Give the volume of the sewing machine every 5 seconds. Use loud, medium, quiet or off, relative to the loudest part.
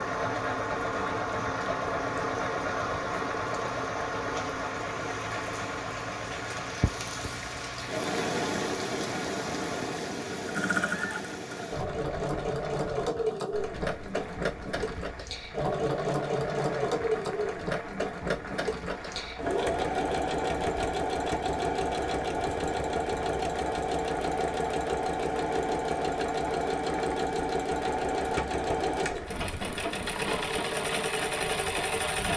loud, medium, loud, loud, loud, loud, loud.